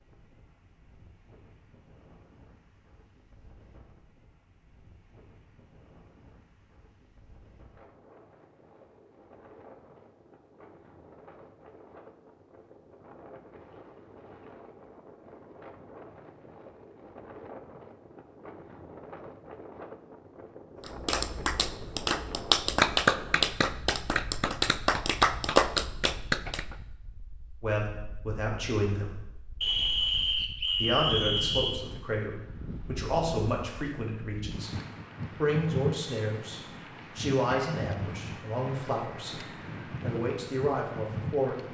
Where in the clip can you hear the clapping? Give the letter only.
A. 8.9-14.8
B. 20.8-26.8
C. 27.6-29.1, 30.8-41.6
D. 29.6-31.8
B.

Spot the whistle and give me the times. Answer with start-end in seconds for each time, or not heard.
29.6-31.8.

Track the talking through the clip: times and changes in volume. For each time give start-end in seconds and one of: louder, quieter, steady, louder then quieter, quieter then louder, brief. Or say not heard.
27.6-29.1 brief
30.8-41.6 steady.